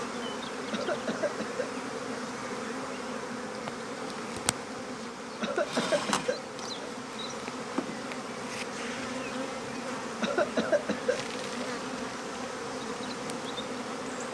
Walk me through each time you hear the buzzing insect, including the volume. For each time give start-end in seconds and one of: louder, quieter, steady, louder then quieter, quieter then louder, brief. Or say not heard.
0.0-14.2 steady.